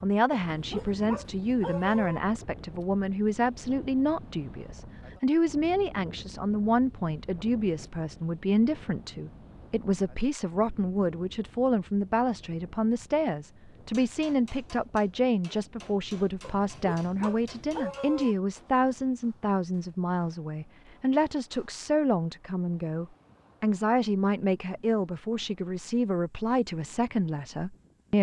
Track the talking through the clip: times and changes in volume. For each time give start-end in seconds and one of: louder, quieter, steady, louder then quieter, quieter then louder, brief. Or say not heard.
0.0-28.1 steady.